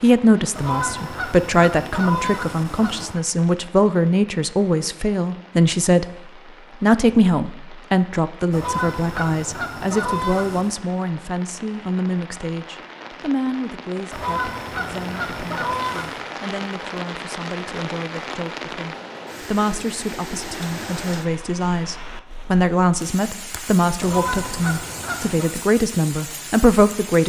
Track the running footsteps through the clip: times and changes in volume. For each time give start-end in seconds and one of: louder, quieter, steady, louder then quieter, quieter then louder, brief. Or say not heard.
not heard.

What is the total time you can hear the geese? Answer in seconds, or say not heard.
9 s.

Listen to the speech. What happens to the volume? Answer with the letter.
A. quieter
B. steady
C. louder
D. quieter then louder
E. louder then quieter
D.